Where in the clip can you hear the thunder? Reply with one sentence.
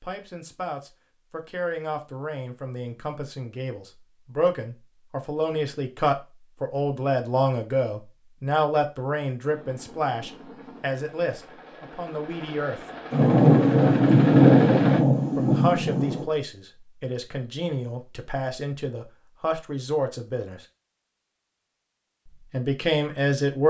You can hear the thunder from 13.1 to 16.2 s.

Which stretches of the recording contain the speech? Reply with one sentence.
You can hear the speech from 0.0 to 12.8 s, from 15.3 to 20.6 s and from 22.5 to 23.6 s.